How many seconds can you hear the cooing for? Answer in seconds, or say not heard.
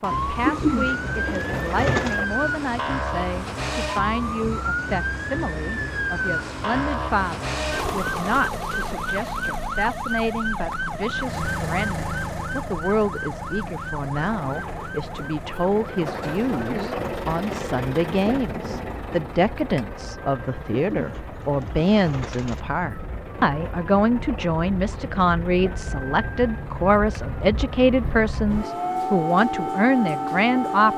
4 s.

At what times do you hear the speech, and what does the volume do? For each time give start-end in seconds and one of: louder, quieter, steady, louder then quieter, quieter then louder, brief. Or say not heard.
0.0-30.9 louder.